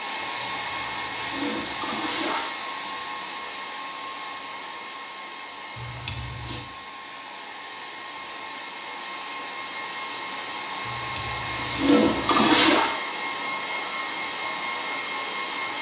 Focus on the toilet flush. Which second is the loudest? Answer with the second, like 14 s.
12 s.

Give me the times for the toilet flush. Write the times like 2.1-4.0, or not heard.
0.4-2.5, 5.8-6.7, 10.8-12.9.